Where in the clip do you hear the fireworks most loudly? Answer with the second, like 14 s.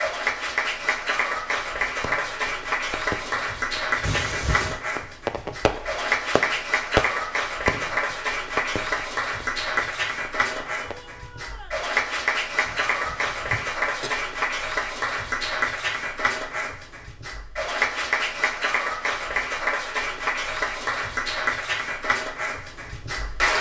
7 s.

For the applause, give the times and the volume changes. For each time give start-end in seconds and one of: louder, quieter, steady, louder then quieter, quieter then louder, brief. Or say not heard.
0.0-23.5 steady.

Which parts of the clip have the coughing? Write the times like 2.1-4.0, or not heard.
4.0-4.8, 12.6-14.2.